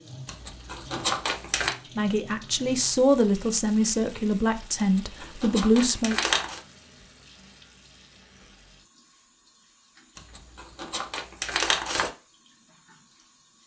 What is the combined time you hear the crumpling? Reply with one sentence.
You can hear the crumpling for 5 seconds altogether.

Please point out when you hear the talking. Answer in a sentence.
The talking can be heard from 1.9 to 6.2 s.